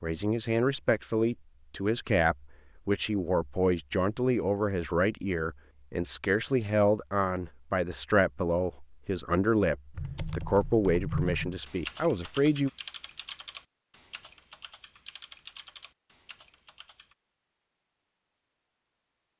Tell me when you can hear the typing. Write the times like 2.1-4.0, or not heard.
9.9-17.1.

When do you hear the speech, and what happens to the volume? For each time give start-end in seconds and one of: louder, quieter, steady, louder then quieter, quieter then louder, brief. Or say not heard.
0.0-12.7 steady.